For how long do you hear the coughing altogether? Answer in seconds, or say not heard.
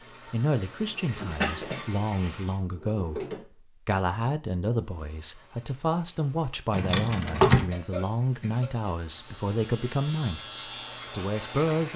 2 s.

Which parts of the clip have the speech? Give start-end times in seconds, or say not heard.
0.3-3.2, 3.9-11.9.